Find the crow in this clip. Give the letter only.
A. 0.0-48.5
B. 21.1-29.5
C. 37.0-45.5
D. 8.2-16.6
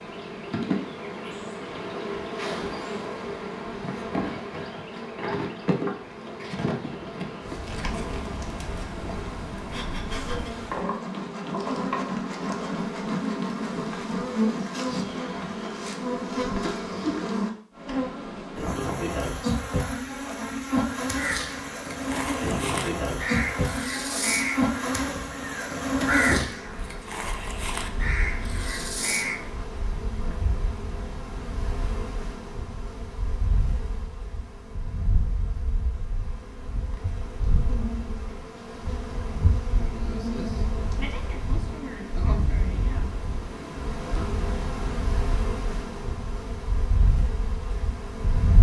B.